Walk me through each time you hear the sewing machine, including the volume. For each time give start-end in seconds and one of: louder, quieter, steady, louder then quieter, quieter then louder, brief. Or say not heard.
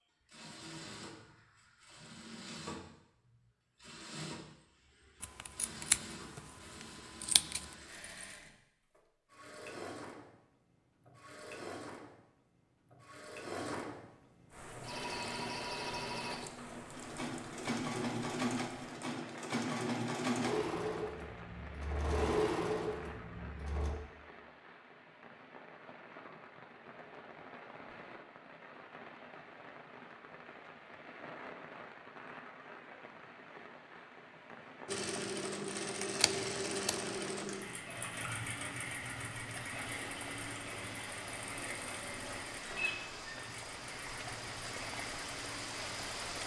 0.2-23.9 louder
34.9-46.4 quieter.